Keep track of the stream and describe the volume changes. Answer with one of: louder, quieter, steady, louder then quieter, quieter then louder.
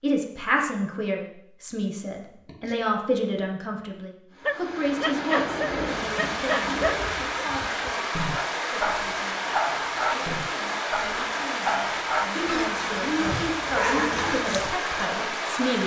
steady.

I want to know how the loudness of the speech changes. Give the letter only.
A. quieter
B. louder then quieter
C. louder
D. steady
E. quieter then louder
E.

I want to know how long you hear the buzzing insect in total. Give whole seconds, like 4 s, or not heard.
not heard.